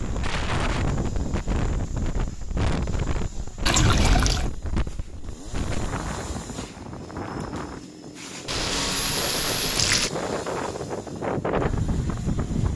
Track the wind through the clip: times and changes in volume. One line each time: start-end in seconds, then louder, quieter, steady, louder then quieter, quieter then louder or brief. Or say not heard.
0.0-12.7 quieter then louder.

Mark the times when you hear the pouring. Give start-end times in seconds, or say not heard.
3.6-4.5, 8.4-10.1.